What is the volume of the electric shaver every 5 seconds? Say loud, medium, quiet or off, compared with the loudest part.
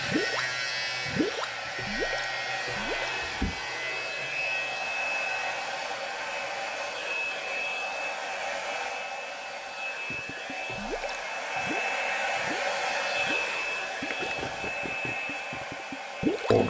loud, medium, off, off.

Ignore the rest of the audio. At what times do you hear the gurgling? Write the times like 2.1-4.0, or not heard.
0.0-3.1, 9.9-16.6.